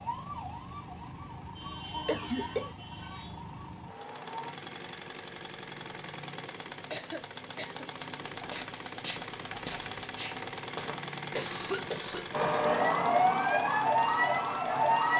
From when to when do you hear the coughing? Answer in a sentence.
The coughing can be heard from 2.0 to 2.7 s, from 6.9 to 7.8 s and from 11.3 to 12.7 s.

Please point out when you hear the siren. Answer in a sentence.
You can hear the siren from 0.0 to 4.5 s and from 12.3 to 15.1 s.